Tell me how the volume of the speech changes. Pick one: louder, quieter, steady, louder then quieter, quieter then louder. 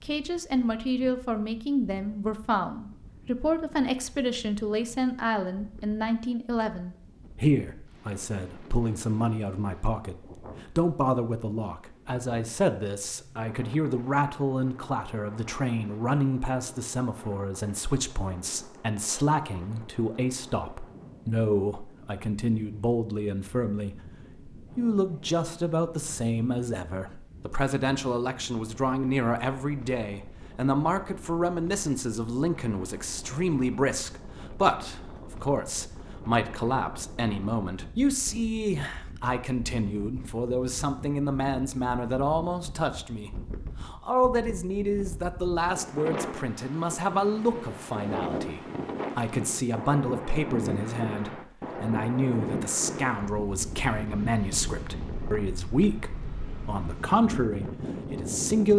steady.